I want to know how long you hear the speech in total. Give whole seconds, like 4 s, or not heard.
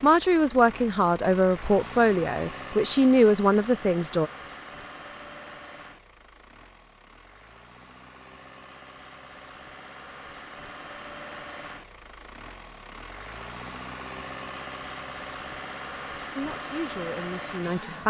6 s.